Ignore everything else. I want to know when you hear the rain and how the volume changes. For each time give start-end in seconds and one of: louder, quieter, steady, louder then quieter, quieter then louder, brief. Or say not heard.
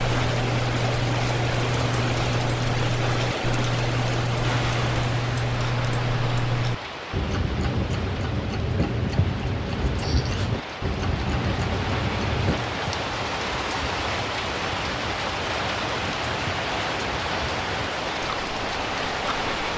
0.0-19.7 quieter then louder.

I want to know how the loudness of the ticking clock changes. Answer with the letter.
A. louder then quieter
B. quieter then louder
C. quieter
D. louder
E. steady
C.